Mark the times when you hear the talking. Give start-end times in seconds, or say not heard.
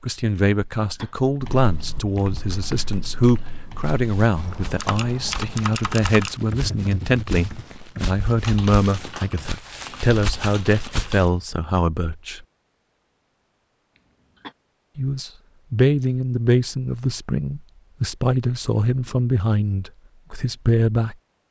0.0-12.4, 14.9-21.1.